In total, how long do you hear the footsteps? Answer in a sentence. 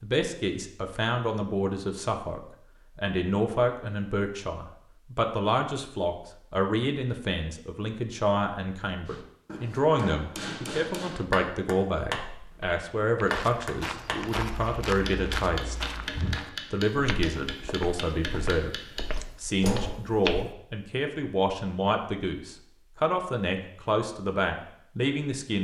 You can hear the footsteps for 8 seconds altogether.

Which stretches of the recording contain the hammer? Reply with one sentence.
You can hear the hammer from 9.1 to 20.0 s.